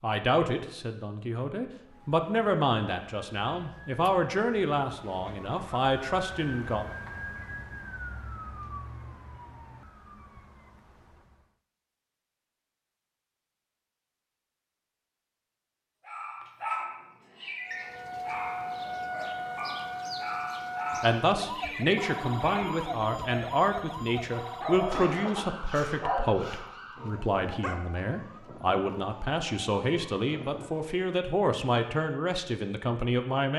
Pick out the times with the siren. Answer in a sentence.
The siren can be heard from 1.8 to 11.5 s and from 17.6 to 31.0 s.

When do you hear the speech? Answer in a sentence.
The speech can be heard from 0.0 to 6.8 s and from 21.0 to 33.5 s.